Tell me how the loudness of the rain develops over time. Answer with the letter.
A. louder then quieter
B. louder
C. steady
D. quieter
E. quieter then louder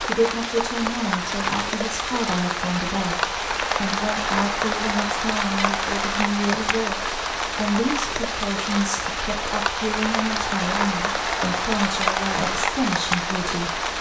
C.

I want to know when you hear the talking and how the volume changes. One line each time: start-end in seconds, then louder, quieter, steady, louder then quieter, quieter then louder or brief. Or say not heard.
0.1-13.9 steady.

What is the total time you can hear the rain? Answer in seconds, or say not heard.
14 s.